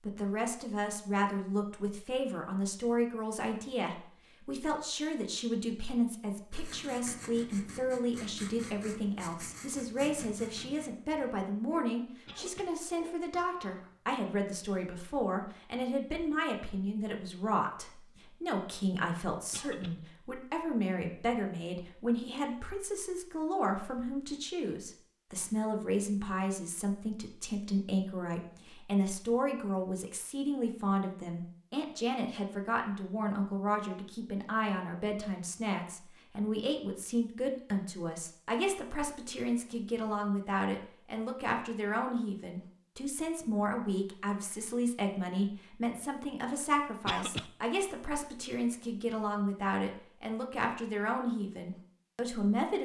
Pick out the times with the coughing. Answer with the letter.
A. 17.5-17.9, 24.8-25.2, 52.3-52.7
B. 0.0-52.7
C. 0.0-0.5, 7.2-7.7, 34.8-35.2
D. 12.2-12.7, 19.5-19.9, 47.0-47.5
D.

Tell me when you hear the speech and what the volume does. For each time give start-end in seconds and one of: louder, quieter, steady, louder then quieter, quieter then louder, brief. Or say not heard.
0.0-52.7 steady.